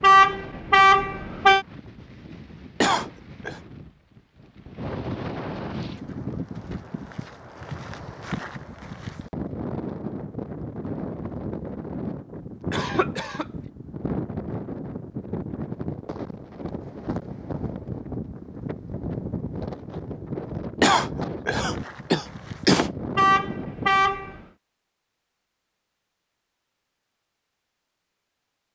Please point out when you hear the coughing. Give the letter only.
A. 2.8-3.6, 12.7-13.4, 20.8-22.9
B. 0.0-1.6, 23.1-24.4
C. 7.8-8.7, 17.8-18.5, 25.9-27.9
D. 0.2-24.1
A.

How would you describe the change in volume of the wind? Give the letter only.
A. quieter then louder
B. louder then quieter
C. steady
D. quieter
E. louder
E.